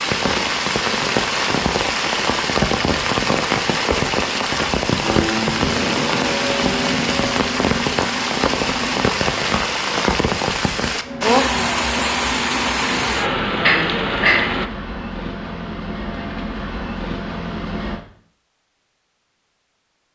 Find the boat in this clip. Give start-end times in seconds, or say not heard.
5.0-9.1, 11.0-18.1.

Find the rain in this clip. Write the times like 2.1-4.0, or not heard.
0.0-14.7.